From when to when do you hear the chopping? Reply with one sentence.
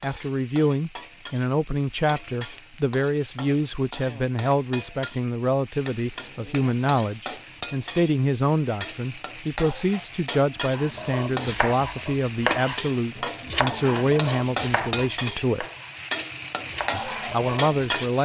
The chopping can be heard from 10.7 to 18.1 s.